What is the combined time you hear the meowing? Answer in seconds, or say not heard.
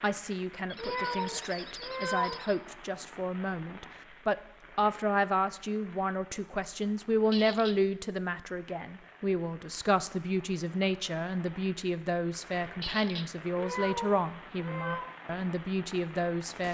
3 s.